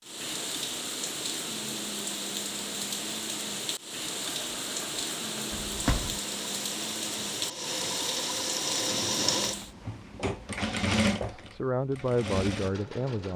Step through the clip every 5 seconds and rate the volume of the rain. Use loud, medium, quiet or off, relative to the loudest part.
loud, loud, off.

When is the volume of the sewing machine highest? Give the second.
11 s.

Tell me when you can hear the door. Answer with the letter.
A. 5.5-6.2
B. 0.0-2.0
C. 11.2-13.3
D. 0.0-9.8
A.